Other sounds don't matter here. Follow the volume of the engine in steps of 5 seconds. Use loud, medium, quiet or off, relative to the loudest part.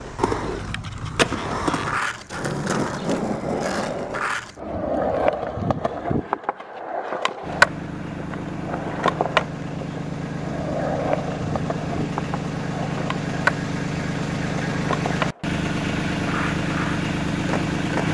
off, medium, loud, loud.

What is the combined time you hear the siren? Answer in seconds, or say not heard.
not heard.